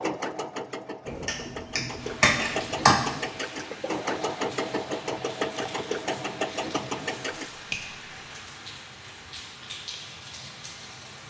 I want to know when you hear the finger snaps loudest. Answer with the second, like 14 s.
3 s.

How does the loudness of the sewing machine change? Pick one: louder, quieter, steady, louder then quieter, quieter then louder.
louder.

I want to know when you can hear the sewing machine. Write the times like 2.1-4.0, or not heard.
0.0-7.5.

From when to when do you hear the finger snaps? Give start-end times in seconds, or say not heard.
1.1-3.1, 7.5-8.0.